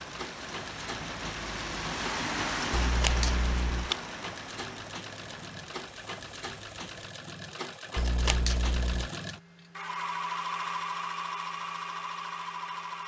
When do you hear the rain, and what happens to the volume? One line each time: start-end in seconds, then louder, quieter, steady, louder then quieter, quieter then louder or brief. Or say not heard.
0.0-7.1 louder then quieter.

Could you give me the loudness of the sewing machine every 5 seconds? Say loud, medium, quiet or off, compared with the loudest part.
medium, medium, loud.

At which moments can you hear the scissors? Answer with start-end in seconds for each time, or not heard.
2.7-4.0, 8.0-9.1.